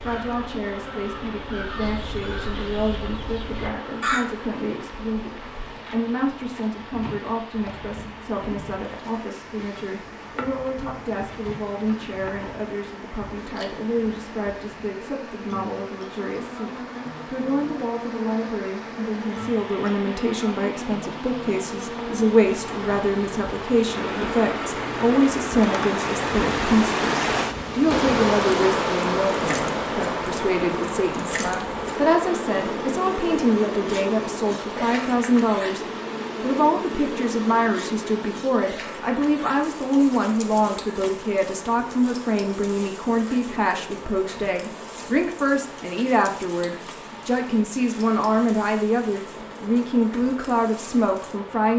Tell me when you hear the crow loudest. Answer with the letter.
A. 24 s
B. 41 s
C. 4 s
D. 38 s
C.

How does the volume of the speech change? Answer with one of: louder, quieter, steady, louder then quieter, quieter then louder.
louder.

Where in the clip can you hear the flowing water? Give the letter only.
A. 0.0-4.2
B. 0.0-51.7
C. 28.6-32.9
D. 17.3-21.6
B.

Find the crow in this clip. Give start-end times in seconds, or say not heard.
0.0-4.2.